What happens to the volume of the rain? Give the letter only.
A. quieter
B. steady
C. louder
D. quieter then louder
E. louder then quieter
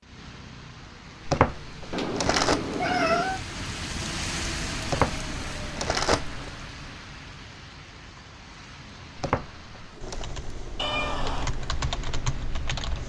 E.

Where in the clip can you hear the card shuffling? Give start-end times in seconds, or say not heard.
1.2-2.6, 4.8-6.5, 9.2-10.2.